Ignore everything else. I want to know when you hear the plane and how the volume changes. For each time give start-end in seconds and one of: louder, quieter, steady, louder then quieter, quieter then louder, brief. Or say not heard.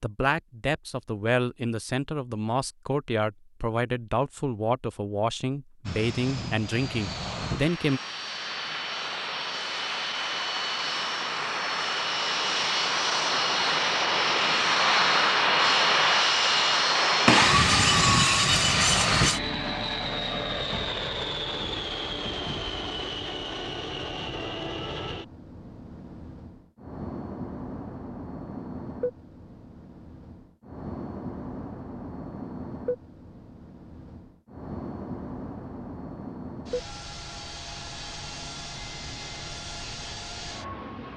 5.8-41.1 louder then quieter.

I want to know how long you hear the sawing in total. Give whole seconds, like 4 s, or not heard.
2 s.